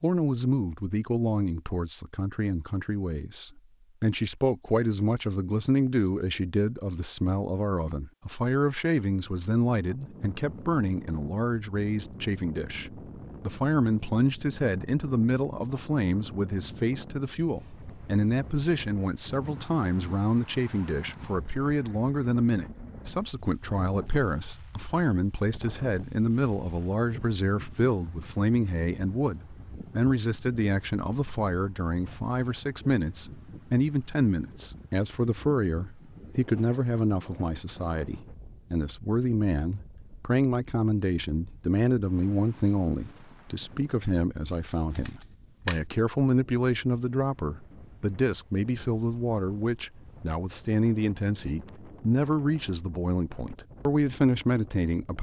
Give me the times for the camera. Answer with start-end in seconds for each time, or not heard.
44.5-45.8.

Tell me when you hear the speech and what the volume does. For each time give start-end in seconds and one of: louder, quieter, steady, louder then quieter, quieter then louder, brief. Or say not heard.
0.0-55.1 steady.